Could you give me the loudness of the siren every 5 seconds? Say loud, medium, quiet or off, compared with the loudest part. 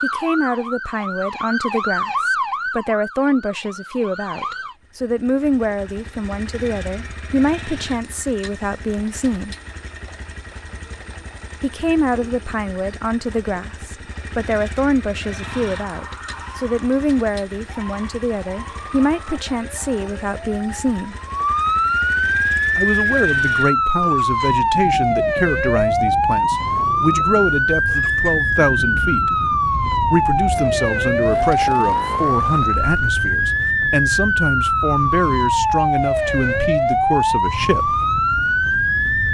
medium, off, off, quiet, loud, loud, loud, loud.